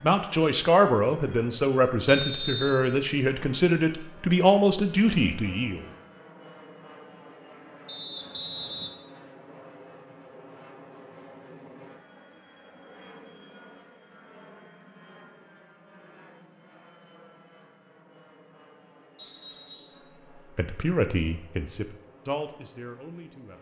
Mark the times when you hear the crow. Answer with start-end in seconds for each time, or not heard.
not heard.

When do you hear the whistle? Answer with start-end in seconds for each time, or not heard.
2.0-2.9, 7.8-8.9, 19.1-20.0.